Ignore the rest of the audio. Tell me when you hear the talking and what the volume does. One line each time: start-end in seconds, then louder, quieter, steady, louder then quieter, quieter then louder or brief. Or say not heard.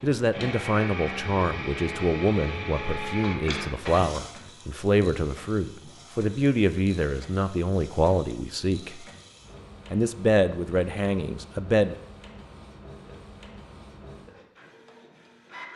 0.0-9.0 steady
9.9-11.9 brief.